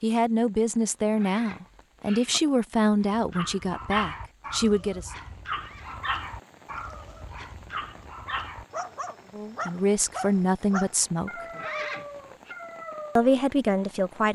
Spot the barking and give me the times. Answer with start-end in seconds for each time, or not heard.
3.0-13.3.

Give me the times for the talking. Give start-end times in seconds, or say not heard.
0.0-5.2, 9.3-11.3, 13.2-14.2.